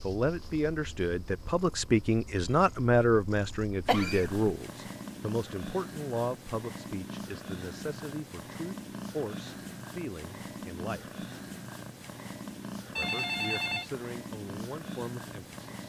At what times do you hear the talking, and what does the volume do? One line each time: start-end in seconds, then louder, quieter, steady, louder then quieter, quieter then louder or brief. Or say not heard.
0.0-11.1 quieter
12.9-15.6 brief.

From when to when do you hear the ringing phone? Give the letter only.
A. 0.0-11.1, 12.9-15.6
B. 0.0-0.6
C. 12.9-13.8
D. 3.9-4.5
C.